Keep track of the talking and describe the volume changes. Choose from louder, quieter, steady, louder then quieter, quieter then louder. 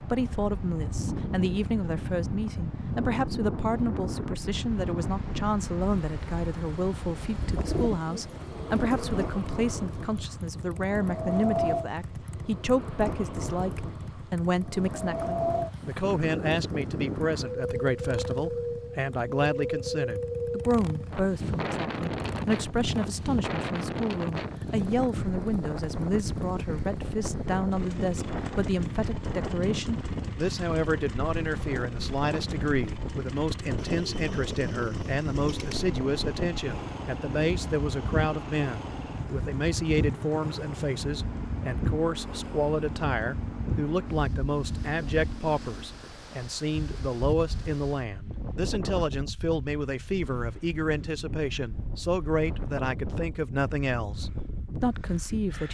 steady.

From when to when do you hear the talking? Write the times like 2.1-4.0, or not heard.
0.0-55.6.